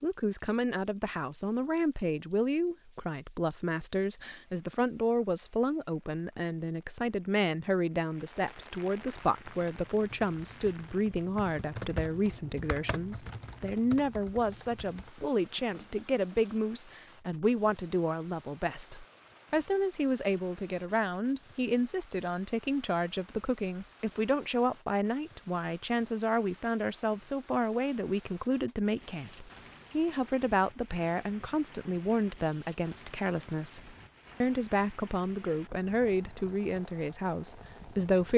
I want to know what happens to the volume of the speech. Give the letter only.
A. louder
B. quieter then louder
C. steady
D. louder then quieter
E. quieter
C.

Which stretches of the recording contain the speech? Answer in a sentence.
The speech can be heard from 0.0 to 38.3 s.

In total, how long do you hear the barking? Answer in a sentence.
The barking can't be heard in this clip.